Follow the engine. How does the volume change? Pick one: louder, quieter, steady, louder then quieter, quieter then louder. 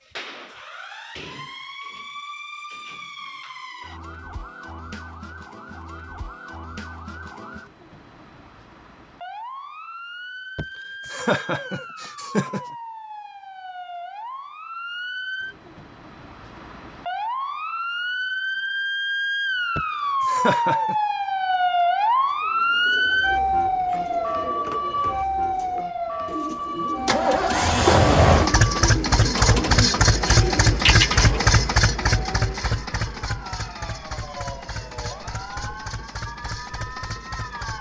quieter.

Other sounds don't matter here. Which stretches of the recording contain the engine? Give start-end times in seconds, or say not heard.
27.1-37.7.